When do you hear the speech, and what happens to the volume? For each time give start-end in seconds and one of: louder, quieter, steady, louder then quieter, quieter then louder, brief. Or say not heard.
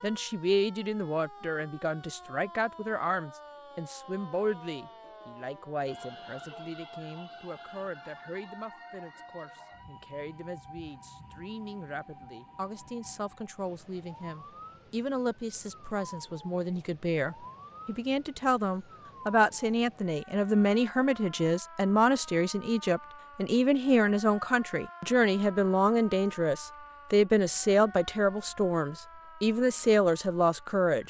0.0-31.0 quieter then louder.